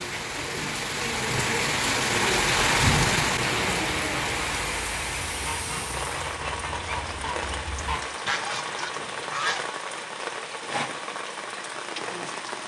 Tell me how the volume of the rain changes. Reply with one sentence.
The loudness of the rain goes down.